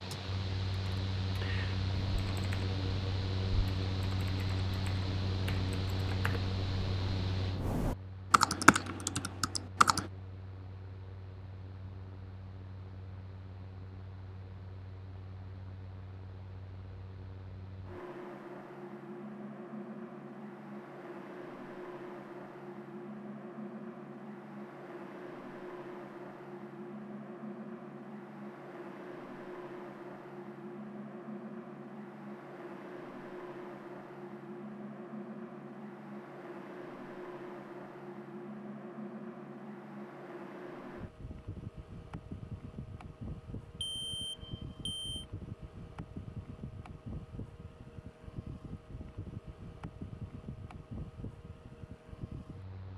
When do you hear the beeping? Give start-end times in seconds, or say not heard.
43.8-45.2.